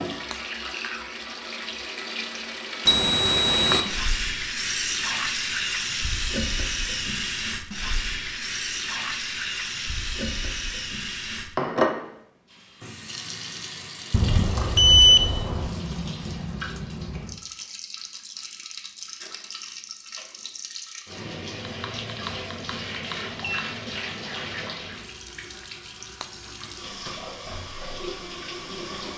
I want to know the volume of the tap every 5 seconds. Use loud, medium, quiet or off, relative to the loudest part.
loud, loud, loud, medium, medium, medium.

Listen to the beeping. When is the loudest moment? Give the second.
15 s.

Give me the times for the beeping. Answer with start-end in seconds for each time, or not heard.
2.9-3.9, 14.1-15.7, 21.6-23.6.